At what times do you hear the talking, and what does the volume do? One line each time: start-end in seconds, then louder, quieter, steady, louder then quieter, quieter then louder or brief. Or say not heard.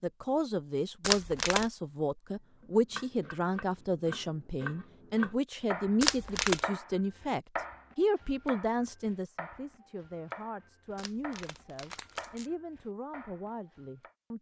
0.0-14.3 quieter.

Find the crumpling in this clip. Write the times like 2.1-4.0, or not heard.
1.0-1.6, 6.0-6.6, 10.9-12.5.